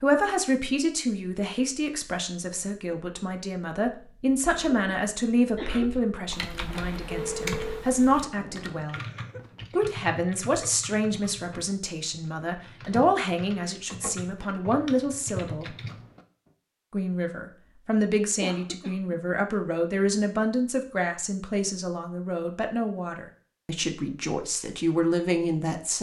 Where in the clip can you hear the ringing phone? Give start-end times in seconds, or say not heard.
6.7-7.8.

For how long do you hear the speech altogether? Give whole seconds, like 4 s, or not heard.
24 s.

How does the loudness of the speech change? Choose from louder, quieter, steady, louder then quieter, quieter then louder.
steady.